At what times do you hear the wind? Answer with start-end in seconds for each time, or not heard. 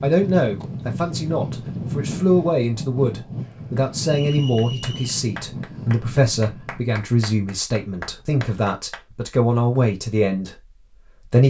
0.0-6.9.